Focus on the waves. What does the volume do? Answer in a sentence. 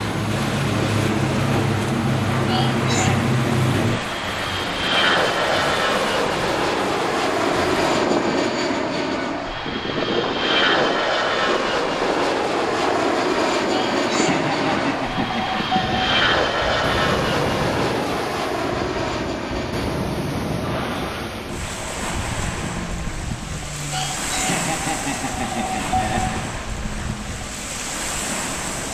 The volume of the waves stays about the same.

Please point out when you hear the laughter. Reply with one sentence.
You can hear the laughter from 2.5 to 3.3 s, from 13.7 to 16.2 s and from 23.9 to 26.4 s.